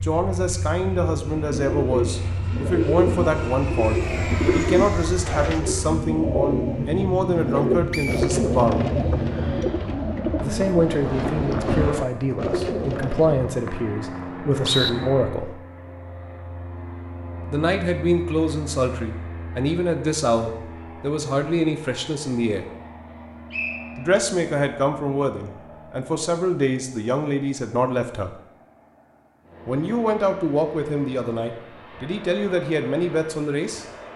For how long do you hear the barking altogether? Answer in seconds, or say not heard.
not heard.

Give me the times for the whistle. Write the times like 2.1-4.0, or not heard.
7.9-8.3, 12.9-14.9, 23.5-23.9.